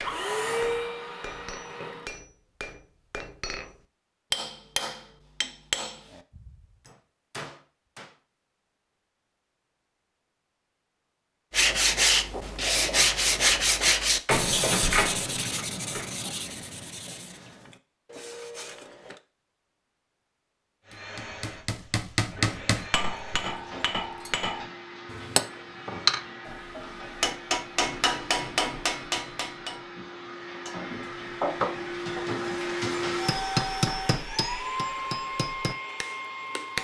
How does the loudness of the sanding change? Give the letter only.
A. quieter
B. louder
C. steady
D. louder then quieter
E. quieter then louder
A.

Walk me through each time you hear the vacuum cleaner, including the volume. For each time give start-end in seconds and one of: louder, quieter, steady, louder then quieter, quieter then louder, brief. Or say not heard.
0.0-2.1 brief
20.8-36.8 louder.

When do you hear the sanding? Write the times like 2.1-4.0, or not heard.
11.5-19.2.